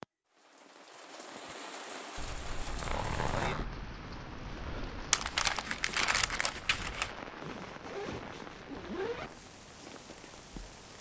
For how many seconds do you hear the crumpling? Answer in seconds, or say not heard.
2 s.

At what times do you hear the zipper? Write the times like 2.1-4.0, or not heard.
2.1-3.6, 7.4-9.3.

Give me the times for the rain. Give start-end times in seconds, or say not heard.
0.0-10.9.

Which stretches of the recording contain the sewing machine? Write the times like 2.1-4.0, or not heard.
not heard.